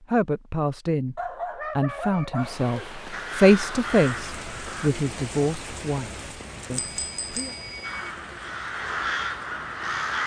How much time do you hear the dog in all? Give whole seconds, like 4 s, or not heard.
2 s.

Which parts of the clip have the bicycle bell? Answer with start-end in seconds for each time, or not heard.
6.2-8.1.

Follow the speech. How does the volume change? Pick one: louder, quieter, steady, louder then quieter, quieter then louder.
louder then quieter.